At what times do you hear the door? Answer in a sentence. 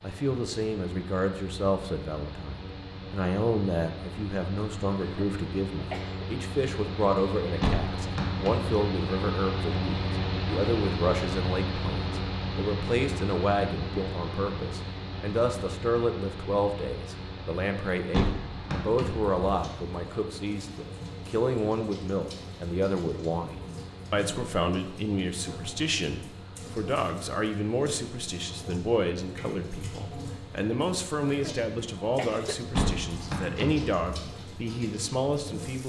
The door can be heard from 7.6 to 8.7 s, from 18.1 to 19.4 s and from 32.7 to 34.0 s.